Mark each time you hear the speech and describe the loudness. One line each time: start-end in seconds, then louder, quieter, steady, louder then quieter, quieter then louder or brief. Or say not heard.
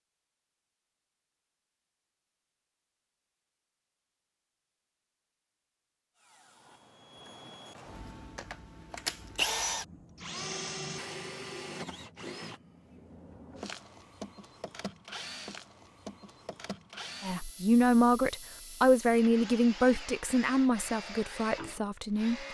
17.2-22.4 quieter.